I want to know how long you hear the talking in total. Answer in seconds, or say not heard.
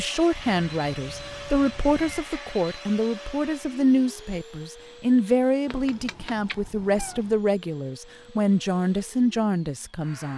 10 s.